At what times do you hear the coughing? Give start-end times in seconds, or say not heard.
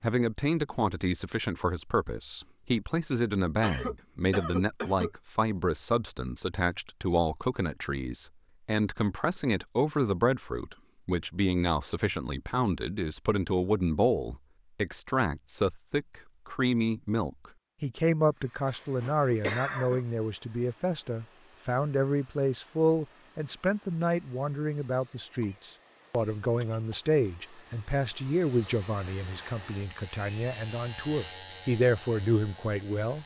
3.6-5.1, 18.6-20.1, 25.4-27.0.